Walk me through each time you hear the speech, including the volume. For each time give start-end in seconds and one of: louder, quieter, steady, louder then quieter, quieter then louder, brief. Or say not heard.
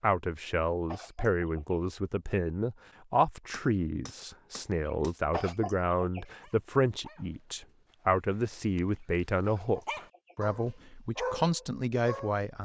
0.0-12.6 steady.